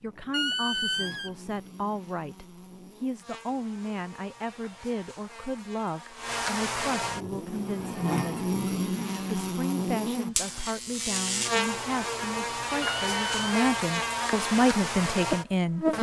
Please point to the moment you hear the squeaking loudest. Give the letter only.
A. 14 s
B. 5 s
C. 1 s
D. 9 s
C.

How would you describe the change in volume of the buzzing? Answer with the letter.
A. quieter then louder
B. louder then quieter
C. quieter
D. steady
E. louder
E.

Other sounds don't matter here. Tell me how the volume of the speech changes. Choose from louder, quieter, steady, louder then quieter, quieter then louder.
louder.